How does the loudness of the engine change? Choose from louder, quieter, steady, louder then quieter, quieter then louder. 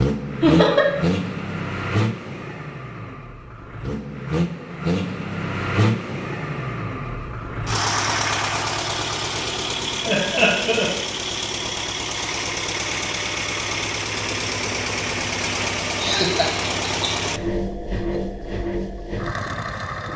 steady.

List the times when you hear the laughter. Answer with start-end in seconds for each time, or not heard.
0.4-0.8, 10.1-10.9, 16.0-17.1.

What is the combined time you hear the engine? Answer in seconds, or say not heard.
20 s.